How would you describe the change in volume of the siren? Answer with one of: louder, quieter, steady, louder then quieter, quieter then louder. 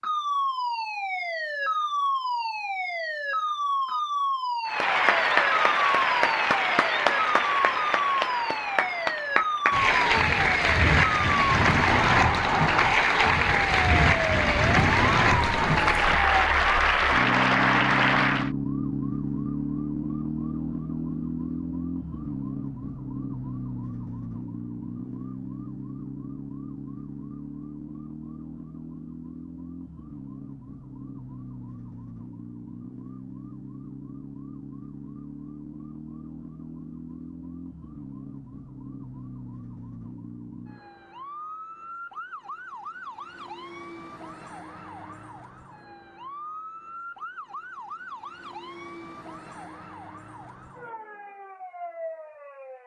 quieter.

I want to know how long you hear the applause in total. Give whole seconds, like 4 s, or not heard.
14 s.